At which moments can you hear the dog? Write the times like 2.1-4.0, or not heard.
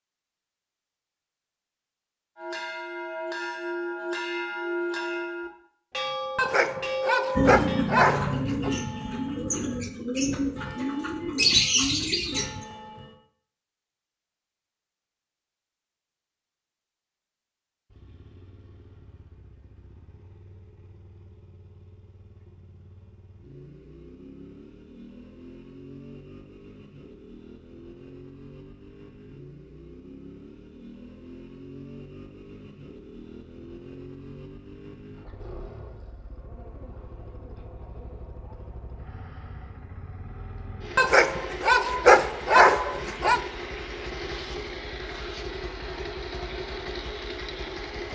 6.3-8.7, 41.0-43.4.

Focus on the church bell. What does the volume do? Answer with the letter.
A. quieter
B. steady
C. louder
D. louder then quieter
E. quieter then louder
A.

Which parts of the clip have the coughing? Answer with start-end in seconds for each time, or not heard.
not heard.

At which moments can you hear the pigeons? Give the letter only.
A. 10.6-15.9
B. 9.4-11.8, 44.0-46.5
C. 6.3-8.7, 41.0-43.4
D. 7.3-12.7
D.